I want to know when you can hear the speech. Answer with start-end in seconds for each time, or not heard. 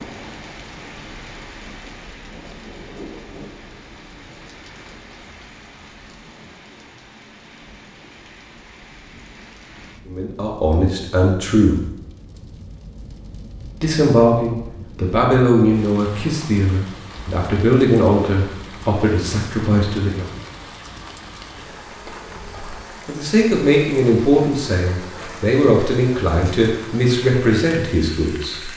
10.1-11.8, 13.8-20.3, 23.1-28.7.